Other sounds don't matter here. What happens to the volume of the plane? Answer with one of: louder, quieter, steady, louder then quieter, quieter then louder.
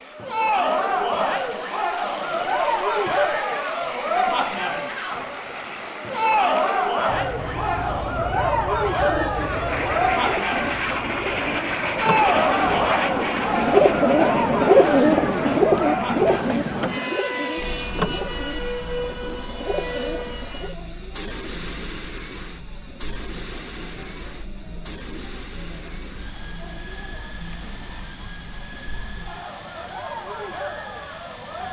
louder then quieter.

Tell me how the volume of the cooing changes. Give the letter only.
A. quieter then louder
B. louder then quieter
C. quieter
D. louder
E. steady
B.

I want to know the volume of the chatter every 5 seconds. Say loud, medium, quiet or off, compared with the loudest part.
loud, loud, loud, medium, quiet, quiet, medium.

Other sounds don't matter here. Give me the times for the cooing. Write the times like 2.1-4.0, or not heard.
8.9-20.8.